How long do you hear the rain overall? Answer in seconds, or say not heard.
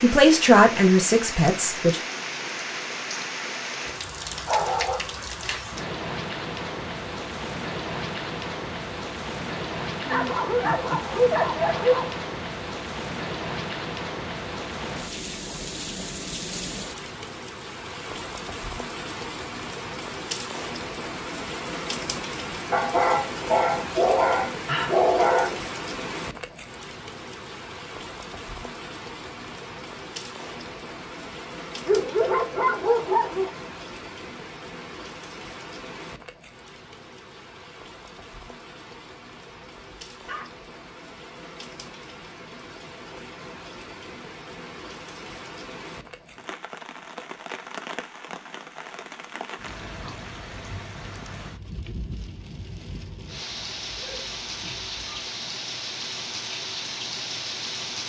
58 s.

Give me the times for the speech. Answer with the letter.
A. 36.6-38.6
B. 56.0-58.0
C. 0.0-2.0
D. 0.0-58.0
C.